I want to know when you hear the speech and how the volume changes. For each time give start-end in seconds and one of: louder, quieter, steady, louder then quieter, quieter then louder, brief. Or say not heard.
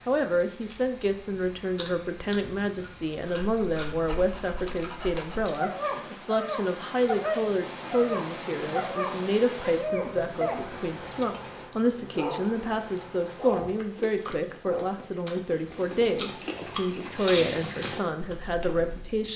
0.1-19.3 steady.